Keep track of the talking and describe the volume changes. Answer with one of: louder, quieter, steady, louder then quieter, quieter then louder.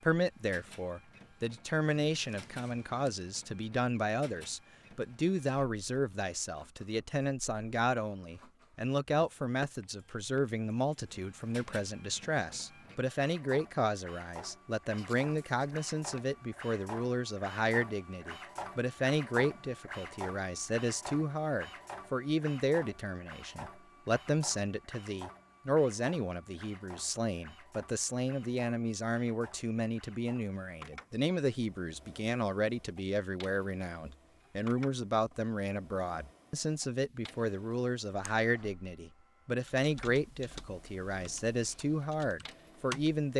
steady.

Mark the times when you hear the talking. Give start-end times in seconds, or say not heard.
0.0-43.3.